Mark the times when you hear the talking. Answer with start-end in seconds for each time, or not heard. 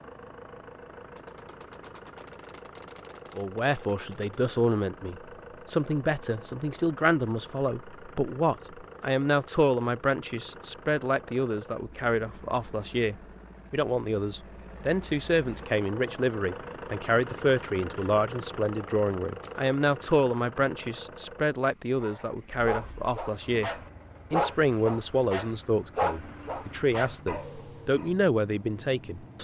3.4-23.7, 24.3-29.4.